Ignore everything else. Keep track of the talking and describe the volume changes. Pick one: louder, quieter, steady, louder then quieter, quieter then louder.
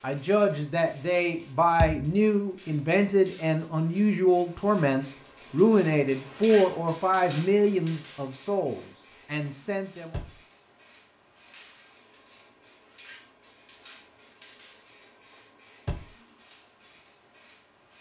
quieter.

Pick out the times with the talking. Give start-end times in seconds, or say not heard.
0.0-10.2.